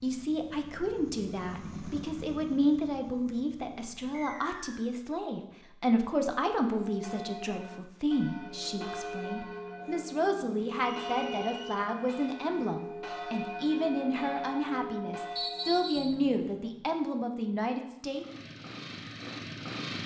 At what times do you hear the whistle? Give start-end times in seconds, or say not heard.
4.1-4.9, 10.9-11.8, 15.3-16.1.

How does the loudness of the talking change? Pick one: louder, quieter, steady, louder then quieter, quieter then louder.
steady.